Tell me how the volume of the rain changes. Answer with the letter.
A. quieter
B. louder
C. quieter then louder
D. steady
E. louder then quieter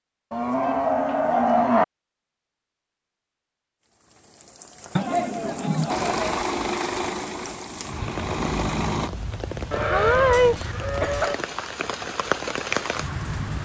B.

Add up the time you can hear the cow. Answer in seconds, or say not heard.
5 s.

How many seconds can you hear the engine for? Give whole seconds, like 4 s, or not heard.
3 s.